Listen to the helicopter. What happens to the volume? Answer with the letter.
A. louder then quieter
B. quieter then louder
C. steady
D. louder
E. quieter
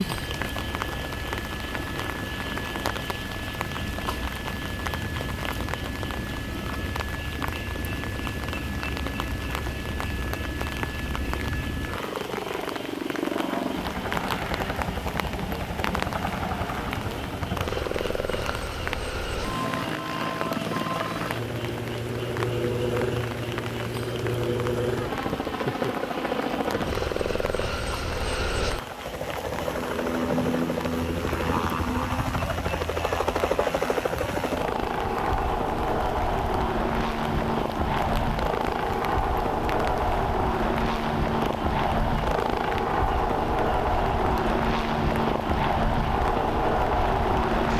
D.